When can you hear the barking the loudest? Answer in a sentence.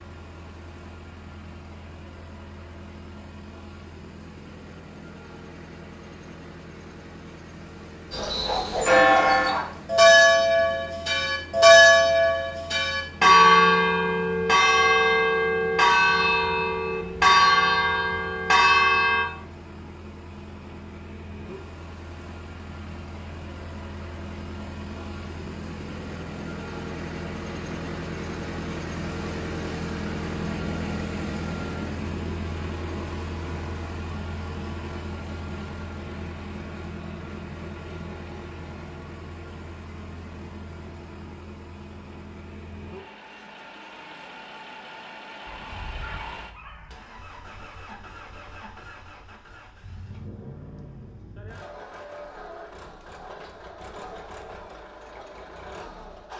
The volume of the barking peaks at 9 seconds.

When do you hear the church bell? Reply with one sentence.
The church bell can be heard from 8.1 to 19.2 s.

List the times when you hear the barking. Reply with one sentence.
The barking can be heard from 8.2 to 9.8 s and from 45.5 to 47.0 s.